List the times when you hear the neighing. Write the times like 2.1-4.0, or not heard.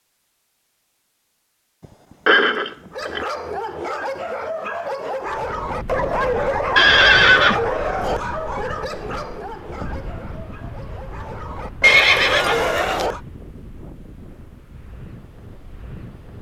2.2-3.2, 6.8-7.7, 11.8-13.1.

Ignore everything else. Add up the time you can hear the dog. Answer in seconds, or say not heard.
10 s.